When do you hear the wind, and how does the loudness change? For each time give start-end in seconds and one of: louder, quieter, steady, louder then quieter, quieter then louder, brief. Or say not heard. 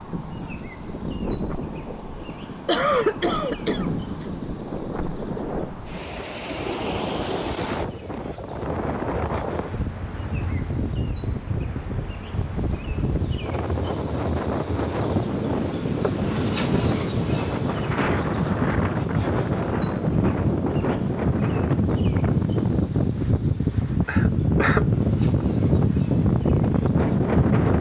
0.0-27.7 louder.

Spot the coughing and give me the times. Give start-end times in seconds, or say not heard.
2.6-4.2, 24.1-24.9.